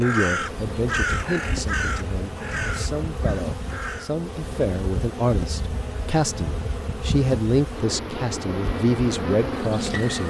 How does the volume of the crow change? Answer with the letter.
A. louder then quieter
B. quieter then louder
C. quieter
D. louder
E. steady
C.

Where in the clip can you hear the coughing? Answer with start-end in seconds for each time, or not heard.
not heard.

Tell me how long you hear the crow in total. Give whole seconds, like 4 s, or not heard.
4 s.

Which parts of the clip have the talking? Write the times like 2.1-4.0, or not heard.
0.0-10.2.